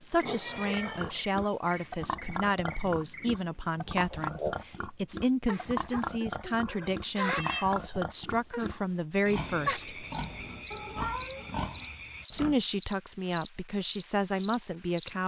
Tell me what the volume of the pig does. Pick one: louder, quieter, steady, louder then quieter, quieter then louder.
steady.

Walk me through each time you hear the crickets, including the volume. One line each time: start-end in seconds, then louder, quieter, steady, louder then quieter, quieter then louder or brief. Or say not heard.
0.0-15.1 louder.